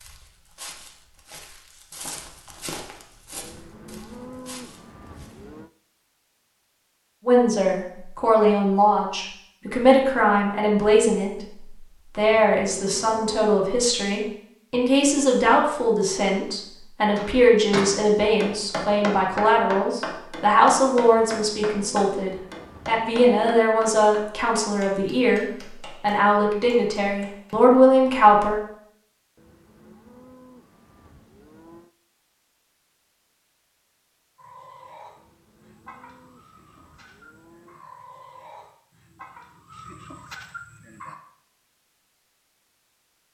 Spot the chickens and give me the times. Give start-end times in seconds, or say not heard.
34.4-41.1.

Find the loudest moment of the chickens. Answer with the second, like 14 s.
40 s.